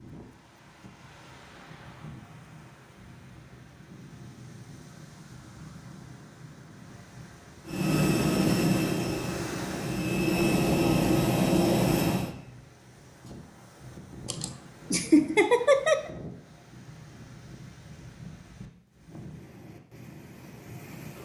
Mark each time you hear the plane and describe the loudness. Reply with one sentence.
The plane can be heard from 7.7 to 12.3 s, getting quieter then louder.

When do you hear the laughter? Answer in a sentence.
You can hear the laughter from 14.2 to 16.1 s.